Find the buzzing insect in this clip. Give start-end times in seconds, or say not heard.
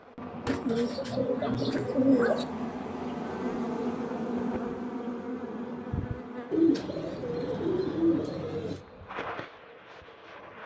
0.0-10.6.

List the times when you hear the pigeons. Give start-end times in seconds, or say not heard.
0.5-2.5, 6.5-8.8.